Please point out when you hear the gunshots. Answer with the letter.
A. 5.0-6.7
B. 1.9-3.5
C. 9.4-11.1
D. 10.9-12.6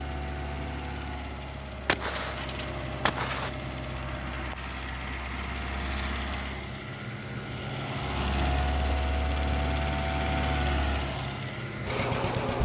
B.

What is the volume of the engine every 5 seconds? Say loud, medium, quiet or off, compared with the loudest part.
medium, loud, loud.